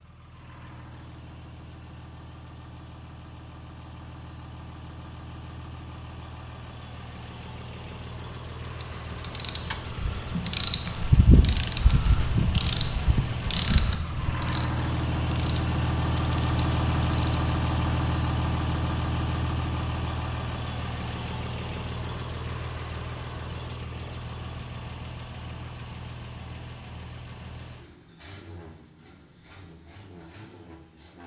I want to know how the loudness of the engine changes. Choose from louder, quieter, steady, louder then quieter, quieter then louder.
louder then quieter.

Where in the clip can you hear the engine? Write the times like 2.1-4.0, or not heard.
0.0-31.2.